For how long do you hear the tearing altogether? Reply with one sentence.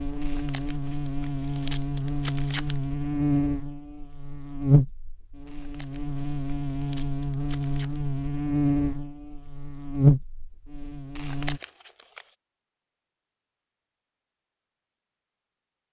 You can hear the tearing for 6 seconds altogether.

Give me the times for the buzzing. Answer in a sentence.
The buzzing can be heard from 0.0 to 11.6 s.